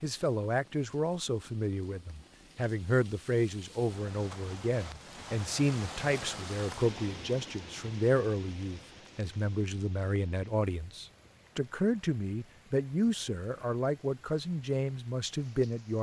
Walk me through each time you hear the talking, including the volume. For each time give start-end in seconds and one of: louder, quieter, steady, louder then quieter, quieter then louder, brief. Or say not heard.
0.0-15.9 steady.